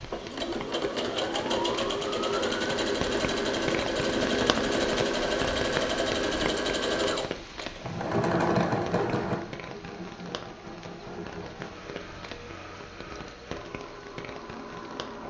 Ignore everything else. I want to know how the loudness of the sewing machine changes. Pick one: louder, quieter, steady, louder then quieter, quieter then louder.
quieter.